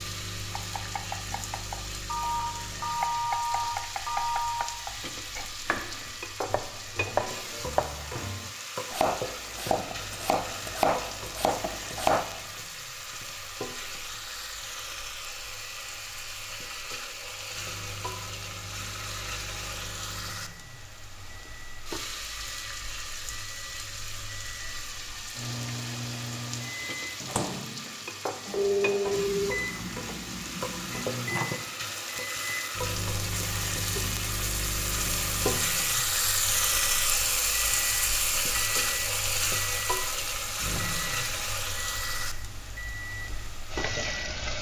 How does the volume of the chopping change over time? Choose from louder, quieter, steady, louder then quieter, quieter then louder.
louder.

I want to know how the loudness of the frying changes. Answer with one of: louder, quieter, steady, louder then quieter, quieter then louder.
louder.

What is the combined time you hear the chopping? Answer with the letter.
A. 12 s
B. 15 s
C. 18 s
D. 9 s
A.